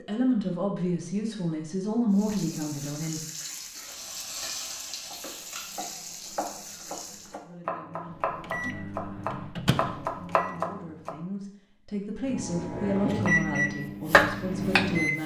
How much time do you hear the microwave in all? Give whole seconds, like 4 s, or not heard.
5 s.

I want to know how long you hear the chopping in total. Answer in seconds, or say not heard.
7 s.